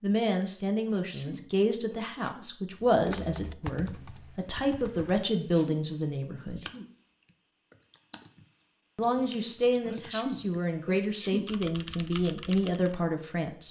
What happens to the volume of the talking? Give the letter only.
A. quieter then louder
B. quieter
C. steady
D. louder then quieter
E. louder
C.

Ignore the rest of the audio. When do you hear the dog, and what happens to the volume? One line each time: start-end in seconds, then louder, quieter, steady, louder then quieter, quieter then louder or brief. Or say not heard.
not heard.